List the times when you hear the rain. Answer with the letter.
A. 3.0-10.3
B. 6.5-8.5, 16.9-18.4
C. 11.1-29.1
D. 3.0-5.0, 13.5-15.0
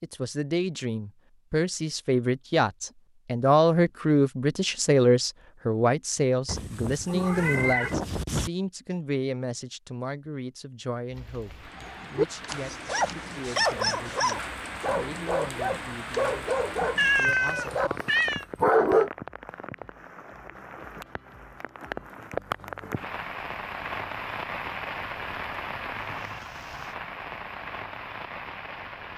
C.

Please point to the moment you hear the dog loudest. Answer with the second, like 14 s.
19 s.